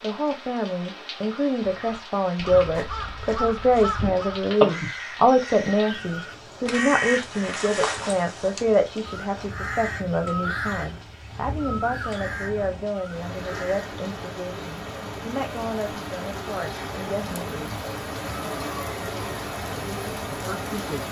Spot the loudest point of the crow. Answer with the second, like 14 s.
5 s.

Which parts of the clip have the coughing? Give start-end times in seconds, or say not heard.
not heard.